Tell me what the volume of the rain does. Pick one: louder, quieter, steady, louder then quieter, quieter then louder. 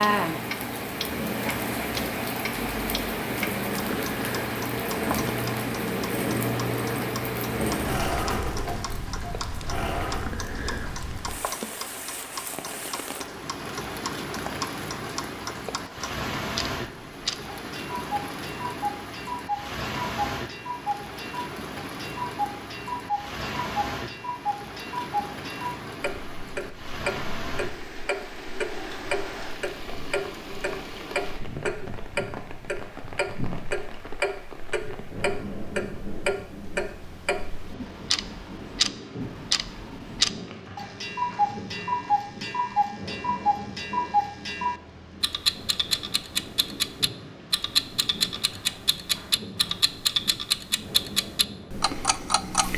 quieter.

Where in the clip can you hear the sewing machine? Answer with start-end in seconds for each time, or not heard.
0.0-10.3.